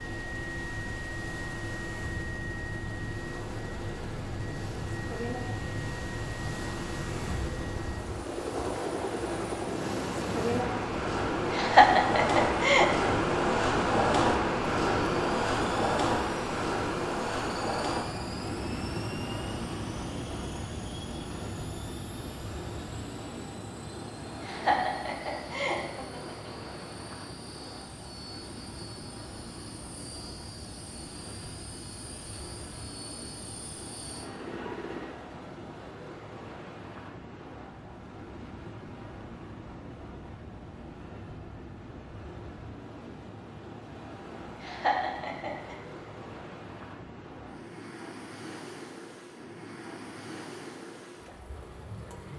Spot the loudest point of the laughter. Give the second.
12 s.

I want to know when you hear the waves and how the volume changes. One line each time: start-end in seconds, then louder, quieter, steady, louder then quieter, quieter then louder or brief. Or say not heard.
0.0-52.3 louder then quieter.